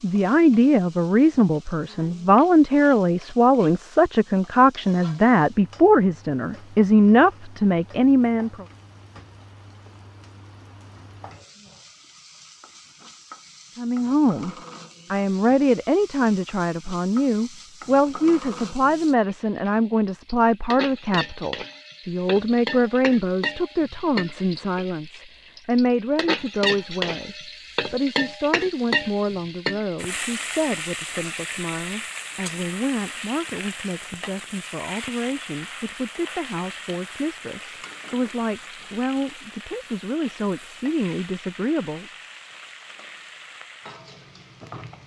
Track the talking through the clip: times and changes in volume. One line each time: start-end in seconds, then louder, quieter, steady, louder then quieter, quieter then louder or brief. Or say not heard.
0.0-8.7 steady
13.8-42.0 quieter.